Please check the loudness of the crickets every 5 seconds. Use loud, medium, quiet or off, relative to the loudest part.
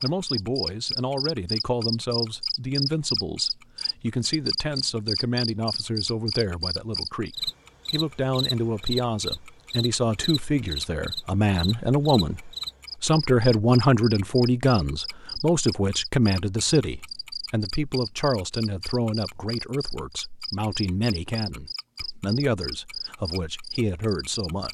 loud, loud, medium, medium, medium.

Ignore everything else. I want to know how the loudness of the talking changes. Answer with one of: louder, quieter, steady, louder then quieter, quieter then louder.
louder then quieter.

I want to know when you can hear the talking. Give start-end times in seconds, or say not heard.
0.0-24.6.